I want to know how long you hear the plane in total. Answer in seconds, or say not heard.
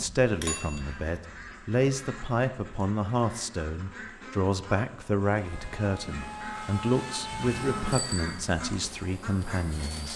5 s.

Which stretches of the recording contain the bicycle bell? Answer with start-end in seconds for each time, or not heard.
0.3-1.2, 7.9-8.4.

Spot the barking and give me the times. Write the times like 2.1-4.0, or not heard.
not heard.